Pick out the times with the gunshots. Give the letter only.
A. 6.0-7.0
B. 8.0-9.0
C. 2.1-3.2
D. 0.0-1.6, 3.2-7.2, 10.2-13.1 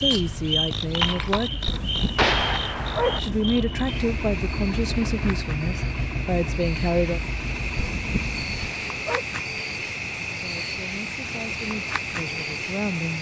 C.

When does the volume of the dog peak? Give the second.
3 s.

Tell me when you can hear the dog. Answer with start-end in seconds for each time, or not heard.
1.6-3.4, 7.8-9.2.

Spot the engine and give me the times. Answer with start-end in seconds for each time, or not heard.
0.1-8.5.